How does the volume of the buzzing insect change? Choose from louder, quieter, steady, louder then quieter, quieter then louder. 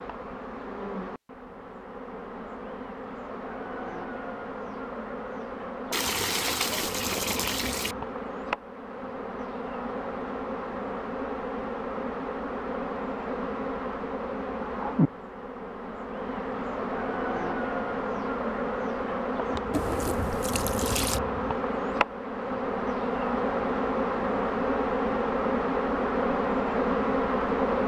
louder.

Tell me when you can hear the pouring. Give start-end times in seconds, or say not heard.
5.9-8.0, 19.7-21.2.